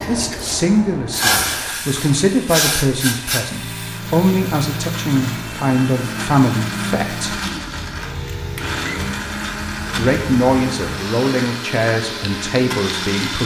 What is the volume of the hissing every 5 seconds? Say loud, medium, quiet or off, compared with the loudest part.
loud, medium, medium.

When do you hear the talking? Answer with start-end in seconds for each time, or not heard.
0.1-7.4, 9.9-13.4.